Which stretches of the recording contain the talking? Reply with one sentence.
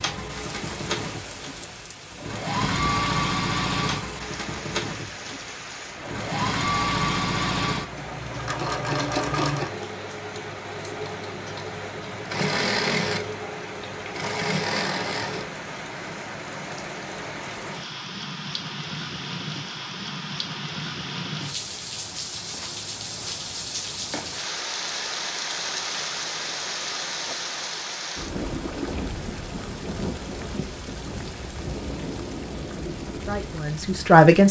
The talking can be heard from 32.9 to 34.4 s.